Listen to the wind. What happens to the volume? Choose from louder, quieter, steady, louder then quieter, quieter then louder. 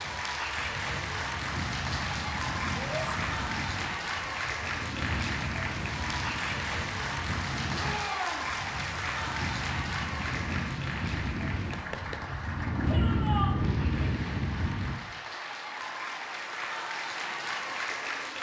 louder.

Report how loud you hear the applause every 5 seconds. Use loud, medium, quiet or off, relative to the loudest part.
loud, loud, medium, loud.